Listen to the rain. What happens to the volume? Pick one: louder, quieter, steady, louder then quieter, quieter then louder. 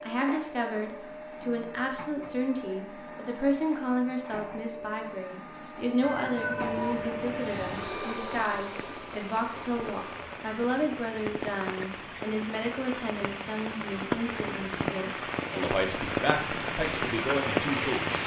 louder.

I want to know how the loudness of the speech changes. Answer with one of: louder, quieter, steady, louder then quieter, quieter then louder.
steady.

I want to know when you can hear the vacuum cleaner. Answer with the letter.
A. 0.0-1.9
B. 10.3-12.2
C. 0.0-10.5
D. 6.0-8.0
C.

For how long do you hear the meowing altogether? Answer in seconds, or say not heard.
2 s.